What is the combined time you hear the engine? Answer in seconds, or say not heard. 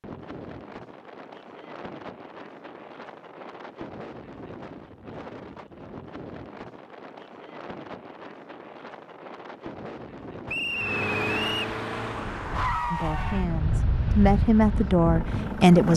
5 s.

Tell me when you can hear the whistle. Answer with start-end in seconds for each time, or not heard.
10.4-11.7.